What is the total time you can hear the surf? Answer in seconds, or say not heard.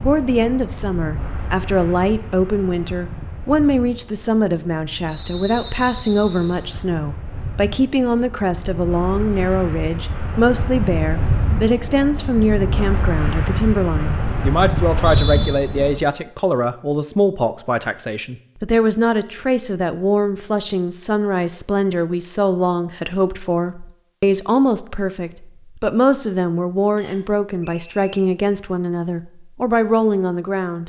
16 s.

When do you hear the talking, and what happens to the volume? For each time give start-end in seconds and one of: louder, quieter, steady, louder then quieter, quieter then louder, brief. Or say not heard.
0.0-30.8 steady.